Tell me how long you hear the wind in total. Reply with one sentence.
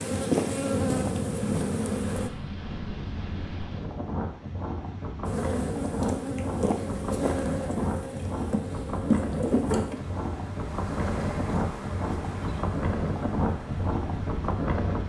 The wind can be heard for 15 seconds in total.